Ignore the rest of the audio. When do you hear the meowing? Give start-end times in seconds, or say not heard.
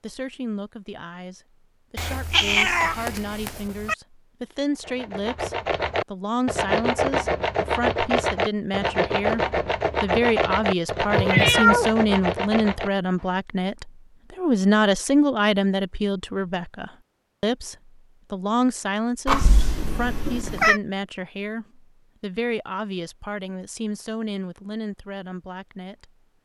1.9-4.0, 11.1-11.8, 19.2-20.8.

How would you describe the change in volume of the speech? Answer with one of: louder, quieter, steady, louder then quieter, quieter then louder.
louder then quieter.